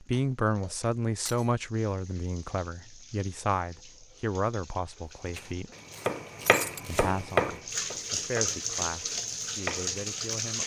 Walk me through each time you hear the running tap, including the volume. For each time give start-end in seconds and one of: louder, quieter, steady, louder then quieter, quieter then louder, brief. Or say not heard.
0.0-10.6 louder.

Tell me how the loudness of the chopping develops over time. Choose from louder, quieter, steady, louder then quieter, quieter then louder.
quieter then louder.